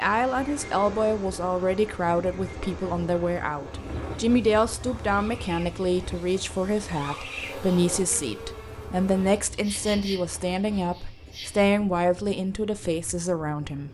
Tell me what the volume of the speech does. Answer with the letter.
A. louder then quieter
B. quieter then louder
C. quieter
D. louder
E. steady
E.